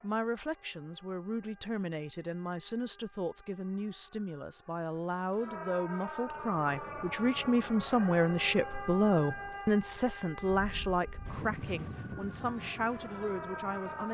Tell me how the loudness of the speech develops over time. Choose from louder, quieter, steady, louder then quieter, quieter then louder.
louder then quieter.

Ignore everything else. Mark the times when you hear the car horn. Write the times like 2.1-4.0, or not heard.
not heard.